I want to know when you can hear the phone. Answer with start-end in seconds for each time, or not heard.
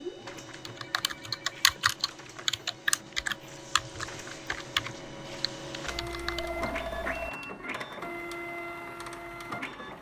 0.9-2.0, 5.8-7.3.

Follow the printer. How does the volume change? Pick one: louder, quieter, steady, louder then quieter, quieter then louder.
louder.